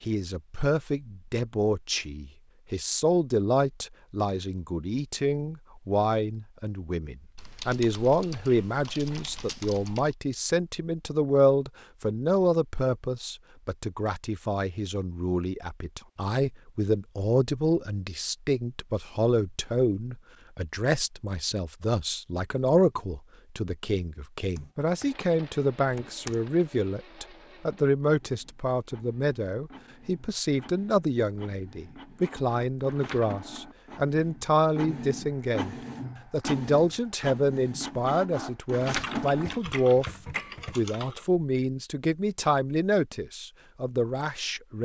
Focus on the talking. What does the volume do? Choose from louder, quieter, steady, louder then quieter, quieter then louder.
steady.